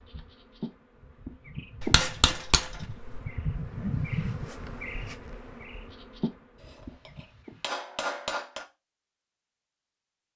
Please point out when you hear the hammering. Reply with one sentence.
You can hear the hammering from 1.8 to 3.2 s and from 6.6 to 8.7 s.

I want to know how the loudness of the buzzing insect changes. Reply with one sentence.
The volume of the buzzing insect goes up, then down.